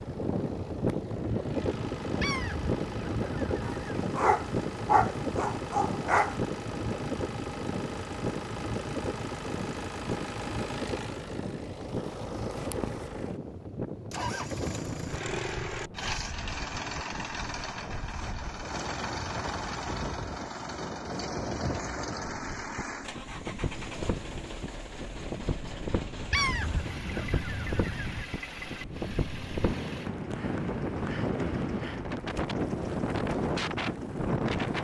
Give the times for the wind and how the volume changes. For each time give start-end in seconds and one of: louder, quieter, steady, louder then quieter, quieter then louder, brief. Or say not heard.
0.0-34.7 quieter then louder.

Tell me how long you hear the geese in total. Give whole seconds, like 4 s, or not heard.
4 s.